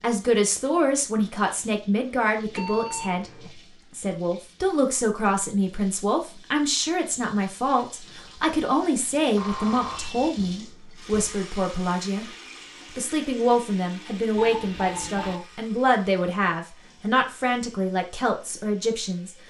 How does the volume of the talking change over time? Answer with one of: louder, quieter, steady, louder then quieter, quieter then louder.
steady.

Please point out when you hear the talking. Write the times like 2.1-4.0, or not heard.
0.0-3.3, 4.0-12.2, 12.9-19.4.